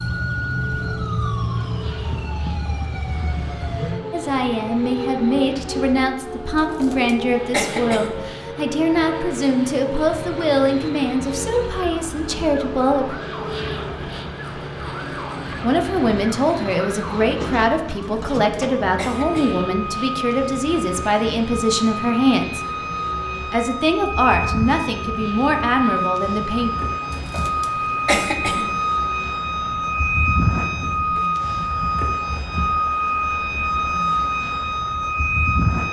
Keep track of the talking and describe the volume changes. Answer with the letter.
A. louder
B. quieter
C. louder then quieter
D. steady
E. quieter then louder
D.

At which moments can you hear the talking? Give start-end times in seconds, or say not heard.
4.1-13.2, 15.6-22.6, 23.5-26.7.